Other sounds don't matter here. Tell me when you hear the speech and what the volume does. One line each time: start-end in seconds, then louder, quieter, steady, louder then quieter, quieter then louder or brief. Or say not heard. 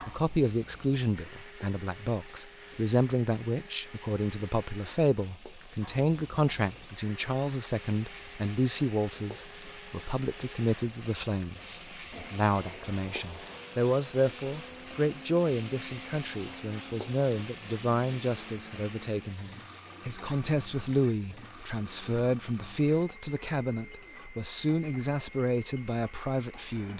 0.1-26.9 steady.